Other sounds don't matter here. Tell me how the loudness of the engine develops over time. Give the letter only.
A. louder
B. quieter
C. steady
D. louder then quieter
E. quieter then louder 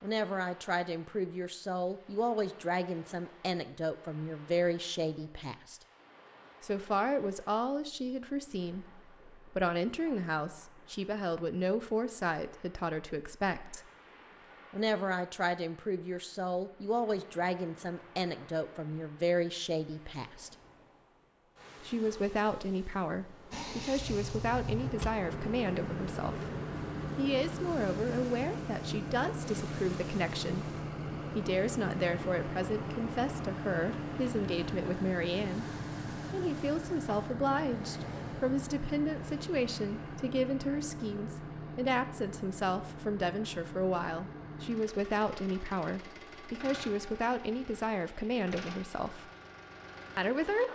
B.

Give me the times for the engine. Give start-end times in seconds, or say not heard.
23.5-50.7.